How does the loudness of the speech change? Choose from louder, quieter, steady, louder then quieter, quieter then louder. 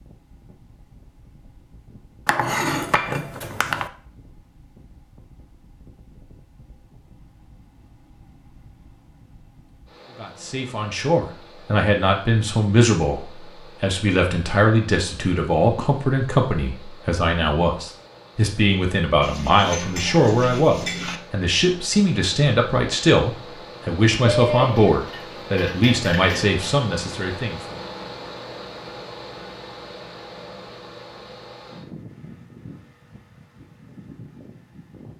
steady.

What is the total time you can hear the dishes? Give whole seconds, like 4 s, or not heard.
6 s.